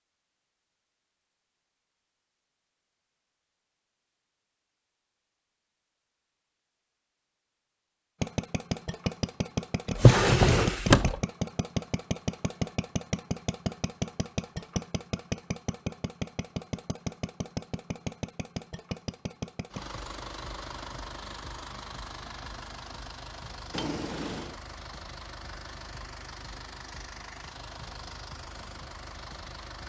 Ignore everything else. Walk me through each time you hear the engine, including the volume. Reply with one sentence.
The engine can be heard from 8.2 to 29.8 s, getting quieter.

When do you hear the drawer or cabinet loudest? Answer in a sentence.
The loudest moment of the drawer or cabinet is at 10 seconds.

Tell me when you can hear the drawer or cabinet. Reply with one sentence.
The drawer or cabinet can be heard from 9.9 to 11.2 s and from 23.7 to 24.6 s.